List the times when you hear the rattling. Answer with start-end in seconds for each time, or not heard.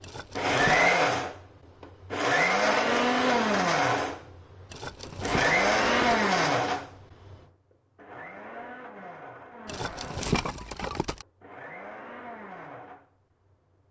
0.0-0.9, 4.7-6.2, 9.7-11.2.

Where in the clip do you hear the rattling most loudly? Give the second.
10 s.